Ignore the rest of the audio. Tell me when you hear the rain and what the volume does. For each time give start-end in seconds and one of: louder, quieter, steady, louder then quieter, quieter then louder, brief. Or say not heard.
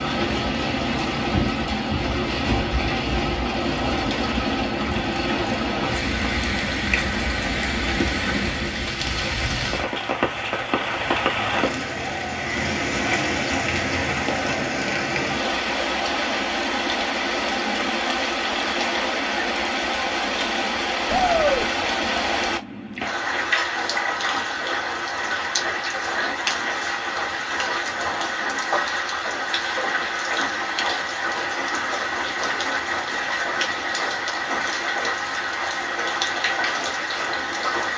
0.0-37.9 steady.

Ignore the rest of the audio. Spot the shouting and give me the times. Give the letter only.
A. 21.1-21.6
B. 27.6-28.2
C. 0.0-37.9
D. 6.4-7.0
A.